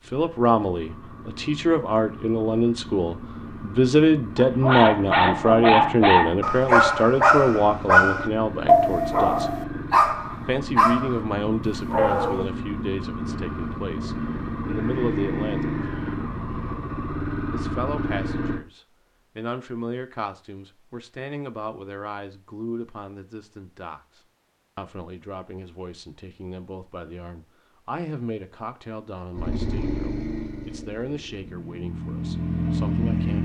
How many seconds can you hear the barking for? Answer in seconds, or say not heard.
8 s.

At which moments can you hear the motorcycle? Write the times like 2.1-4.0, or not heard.
0.0-18.6, 29.4-33.4.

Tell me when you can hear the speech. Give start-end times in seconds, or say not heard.
0.0-9.5, 10.4-15.8, 17.5-33.4.